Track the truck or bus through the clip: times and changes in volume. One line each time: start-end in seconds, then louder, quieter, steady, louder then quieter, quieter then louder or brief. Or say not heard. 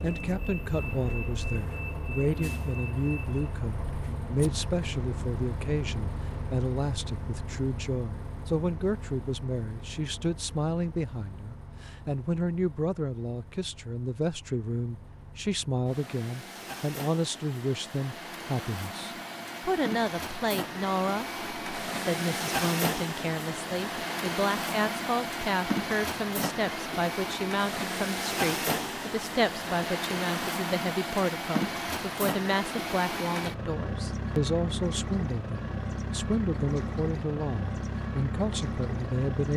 0.0-39.5 quieter then louder.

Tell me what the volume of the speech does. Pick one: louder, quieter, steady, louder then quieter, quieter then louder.
steady.